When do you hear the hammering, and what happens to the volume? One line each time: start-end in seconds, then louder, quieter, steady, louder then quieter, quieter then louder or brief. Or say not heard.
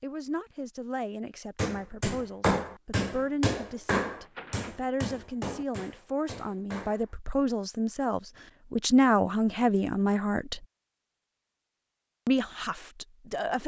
1.6-7.1 quieter.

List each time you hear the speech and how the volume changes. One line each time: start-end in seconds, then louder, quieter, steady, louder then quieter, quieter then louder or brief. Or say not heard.
0.0-10.7 louder
12.2-13.6 brief.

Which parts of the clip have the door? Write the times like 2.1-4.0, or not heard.
4.2-4.8.